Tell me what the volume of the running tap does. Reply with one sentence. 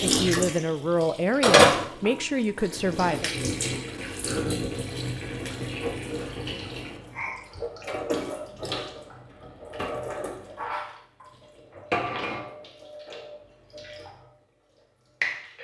The loudness of the running tap goes down.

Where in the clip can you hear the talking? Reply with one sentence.
You can hear the talking from 0.0 to 3.3 s.